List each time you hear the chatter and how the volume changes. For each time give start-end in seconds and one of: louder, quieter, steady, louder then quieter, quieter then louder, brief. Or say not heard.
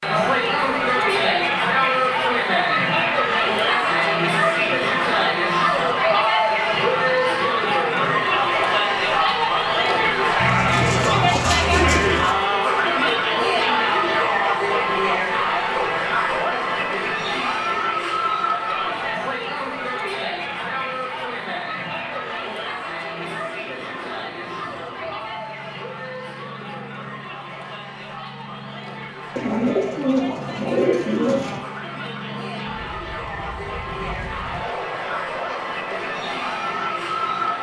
0.0-37.5 quieter.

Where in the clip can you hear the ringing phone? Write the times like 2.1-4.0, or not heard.
not heard.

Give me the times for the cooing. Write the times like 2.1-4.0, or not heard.
10.3-12.3, 29.4-31.6.